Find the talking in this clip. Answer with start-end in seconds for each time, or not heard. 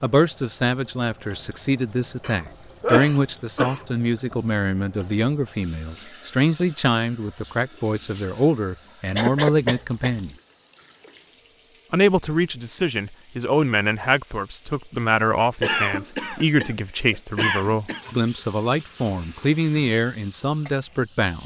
0.0-10.3, 11.9-21.4.